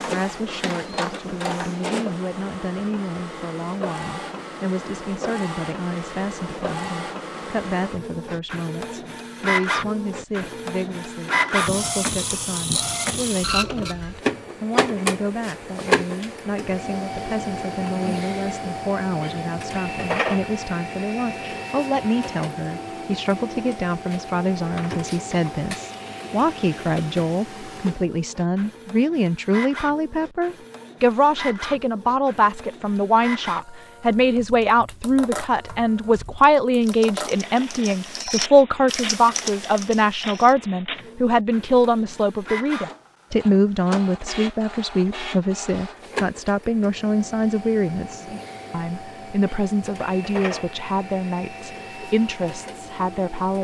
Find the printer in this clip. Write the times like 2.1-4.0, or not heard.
0.0-53.5.